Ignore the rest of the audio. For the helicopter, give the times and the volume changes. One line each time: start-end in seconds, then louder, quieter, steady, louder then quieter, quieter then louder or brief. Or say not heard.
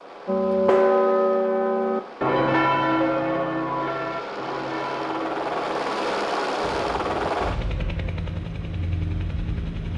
0.0-9.9 louder then quieter.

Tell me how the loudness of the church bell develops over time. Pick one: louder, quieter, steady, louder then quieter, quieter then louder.
quieter.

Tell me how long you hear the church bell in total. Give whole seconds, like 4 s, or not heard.
7 s.